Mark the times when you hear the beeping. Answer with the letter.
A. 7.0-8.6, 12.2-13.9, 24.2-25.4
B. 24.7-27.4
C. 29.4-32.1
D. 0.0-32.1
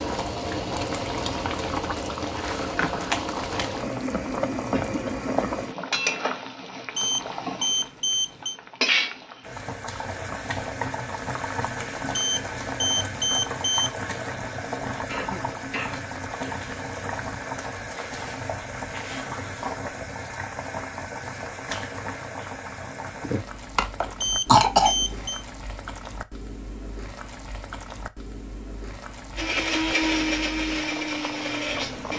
A.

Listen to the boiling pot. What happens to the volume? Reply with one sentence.
The loudness of the boiling pot goes down.